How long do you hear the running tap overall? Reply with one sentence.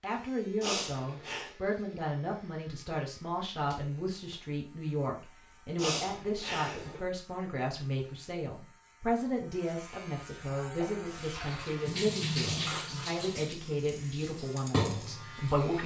The running tap can be heard for 5 seconds in total.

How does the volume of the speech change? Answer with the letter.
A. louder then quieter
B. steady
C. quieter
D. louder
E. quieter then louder
B.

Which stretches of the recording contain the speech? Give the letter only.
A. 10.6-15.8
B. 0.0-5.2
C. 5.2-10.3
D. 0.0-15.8
D.